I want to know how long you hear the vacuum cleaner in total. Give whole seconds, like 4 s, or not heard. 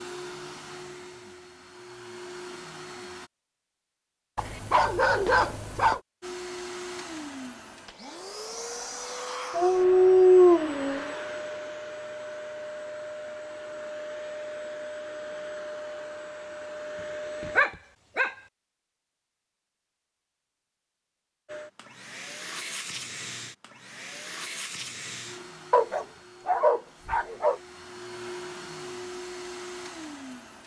24 s.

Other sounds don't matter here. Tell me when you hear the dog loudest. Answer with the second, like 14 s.
10 s.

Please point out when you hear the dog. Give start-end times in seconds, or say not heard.
4.3-6.0, 9.6-11.1, 17.4-18.3, 25.7-27.6.